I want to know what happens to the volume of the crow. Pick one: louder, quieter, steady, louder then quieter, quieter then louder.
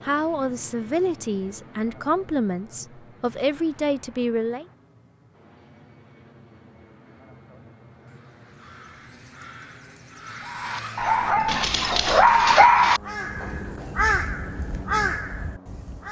louder.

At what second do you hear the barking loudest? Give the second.
13 s.